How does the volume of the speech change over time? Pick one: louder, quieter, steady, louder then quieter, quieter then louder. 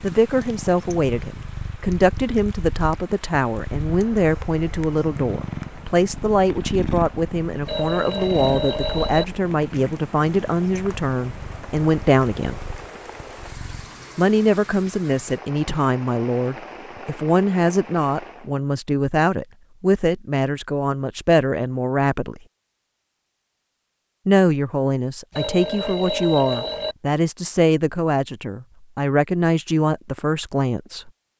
steady.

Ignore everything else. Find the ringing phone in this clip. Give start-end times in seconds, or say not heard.
7.7-9.2, 25.3-26.9.